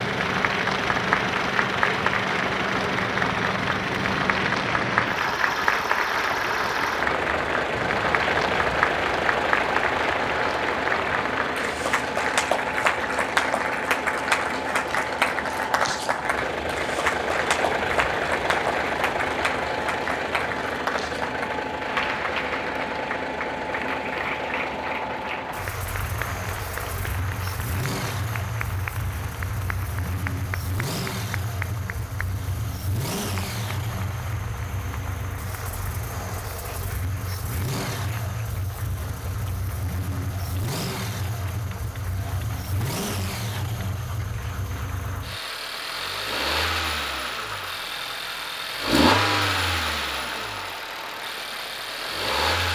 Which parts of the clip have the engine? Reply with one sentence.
You can hear the engine from 0.0 to 52.7 s.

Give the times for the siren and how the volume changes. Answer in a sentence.
You can't hear the siren here.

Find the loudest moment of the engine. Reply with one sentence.
The loudest moment of the engine is at 49 seconds.